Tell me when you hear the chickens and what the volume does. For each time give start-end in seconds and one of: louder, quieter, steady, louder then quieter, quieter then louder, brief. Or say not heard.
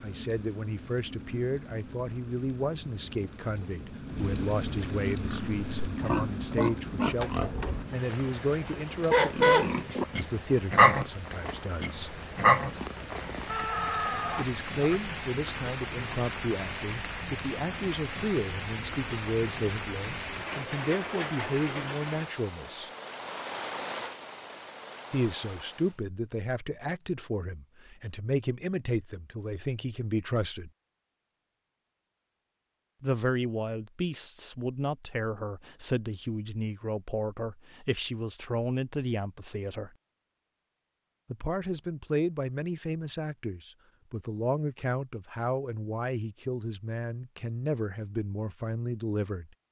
not heard.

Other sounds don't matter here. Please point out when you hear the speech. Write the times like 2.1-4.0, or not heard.
0.0-12.2, 14.3-22.9, 25.1-30.7, 33.0-39.9, 41.3-49.5.